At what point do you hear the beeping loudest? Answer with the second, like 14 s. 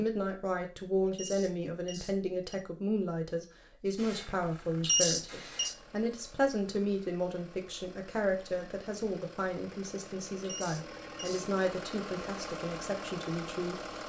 5 s.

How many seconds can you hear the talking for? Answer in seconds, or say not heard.
14 s.